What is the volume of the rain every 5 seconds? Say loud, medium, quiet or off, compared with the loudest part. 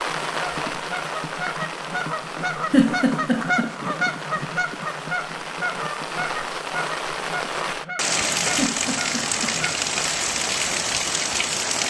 medium, loud, loud.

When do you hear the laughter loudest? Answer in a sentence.
The loudest moment of the laughter is at 3 seconds.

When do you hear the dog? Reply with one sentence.
You can't hear the dog here.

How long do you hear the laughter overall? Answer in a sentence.
You can hear the laughter for 2 seconds altogether.